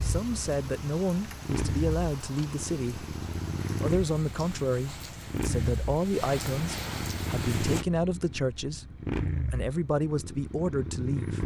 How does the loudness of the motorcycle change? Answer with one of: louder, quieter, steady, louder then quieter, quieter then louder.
steady.